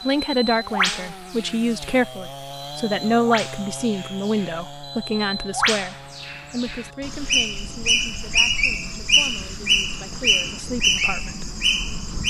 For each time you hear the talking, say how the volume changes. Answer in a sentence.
You can hear the talking from 0.0 to 11.4 s, getting quieter.